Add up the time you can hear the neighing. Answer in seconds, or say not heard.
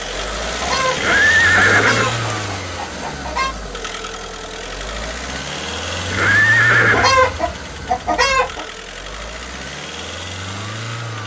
2 s.